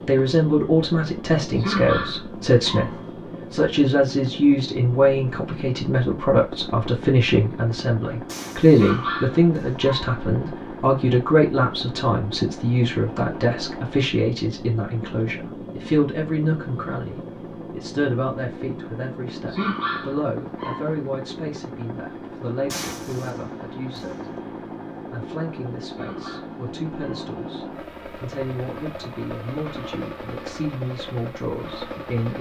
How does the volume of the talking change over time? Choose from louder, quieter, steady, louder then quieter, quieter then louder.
quieter.